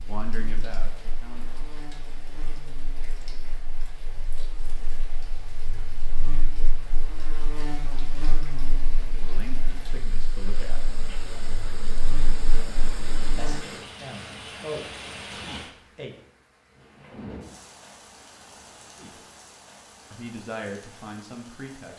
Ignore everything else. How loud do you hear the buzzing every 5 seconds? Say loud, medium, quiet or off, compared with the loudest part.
medium, loud, loud, off, off.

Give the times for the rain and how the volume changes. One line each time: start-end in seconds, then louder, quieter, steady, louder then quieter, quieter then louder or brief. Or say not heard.
0.0-21.9 louder then quieter.